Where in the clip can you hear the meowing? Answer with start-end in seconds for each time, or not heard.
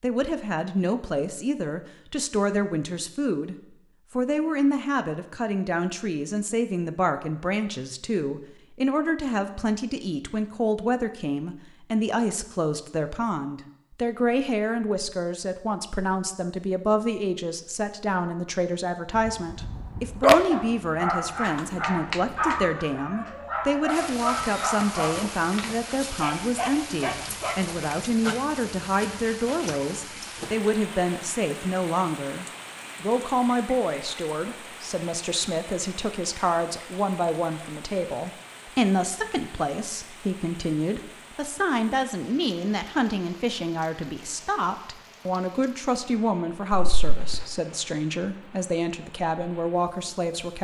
not heard.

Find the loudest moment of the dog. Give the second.
20 s.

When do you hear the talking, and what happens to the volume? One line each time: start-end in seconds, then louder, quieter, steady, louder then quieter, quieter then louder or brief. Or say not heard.
0.0-50.6 steady.